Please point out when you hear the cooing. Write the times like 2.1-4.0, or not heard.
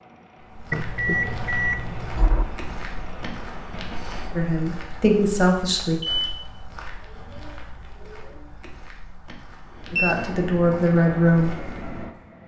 7.0-8.6.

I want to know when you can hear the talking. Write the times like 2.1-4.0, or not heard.
4.3-6.0, 9.9-11.6.